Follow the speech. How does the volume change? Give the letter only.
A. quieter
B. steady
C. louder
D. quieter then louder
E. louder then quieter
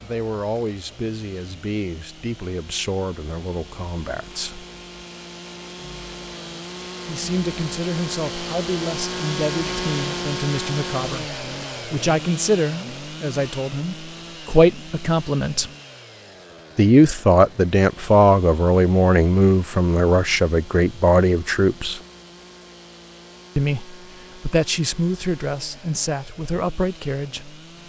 E.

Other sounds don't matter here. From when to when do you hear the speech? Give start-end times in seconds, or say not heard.
0.0-4.7, 7.0-15.7, 16.8-22.0, 23.6-27.6.